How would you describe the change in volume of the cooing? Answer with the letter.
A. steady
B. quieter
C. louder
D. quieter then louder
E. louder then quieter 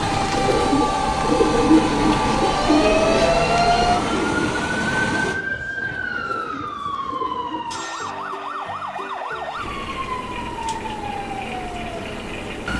B.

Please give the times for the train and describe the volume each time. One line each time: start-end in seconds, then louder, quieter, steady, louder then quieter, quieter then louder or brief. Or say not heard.
0.0-5.3 steady.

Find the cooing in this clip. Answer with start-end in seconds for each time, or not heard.
0.0-7.8.